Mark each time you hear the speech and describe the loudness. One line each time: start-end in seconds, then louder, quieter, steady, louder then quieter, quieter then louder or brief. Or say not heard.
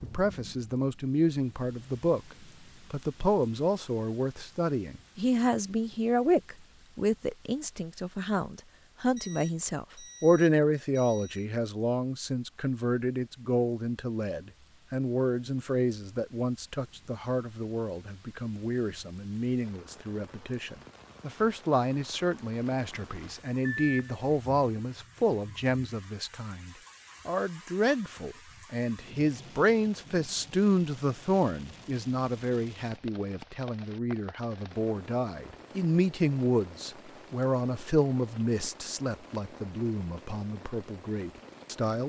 0.0-42.0 steady.